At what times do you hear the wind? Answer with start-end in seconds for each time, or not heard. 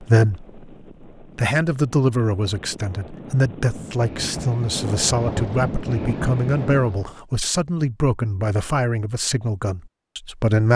0.0-7.2.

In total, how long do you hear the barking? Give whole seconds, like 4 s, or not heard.
not heard.